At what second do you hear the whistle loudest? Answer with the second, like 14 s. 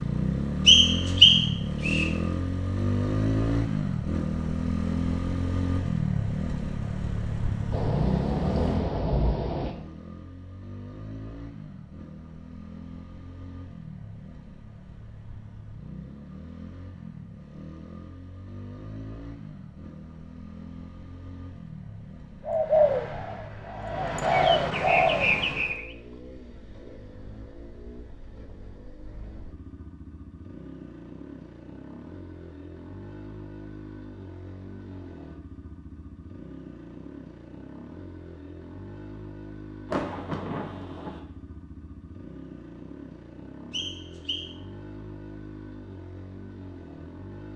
1 s.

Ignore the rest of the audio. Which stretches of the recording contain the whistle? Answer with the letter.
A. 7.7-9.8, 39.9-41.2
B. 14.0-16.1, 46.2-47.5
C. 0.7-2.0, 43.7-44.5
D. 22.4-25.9
C.